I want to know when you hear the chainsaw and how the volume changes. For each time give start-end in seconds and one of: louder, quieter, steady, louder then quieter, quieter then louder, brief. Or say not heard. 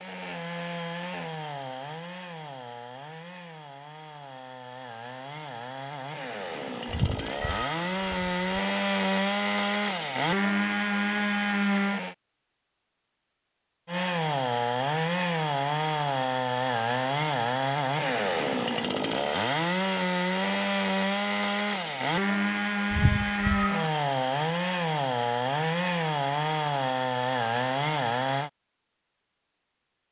0.0-12.2 quieter then louder
13.8-28.5 steady.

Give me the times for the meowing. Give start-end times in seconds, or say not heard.
6.8-8.6, 22.9-23.9.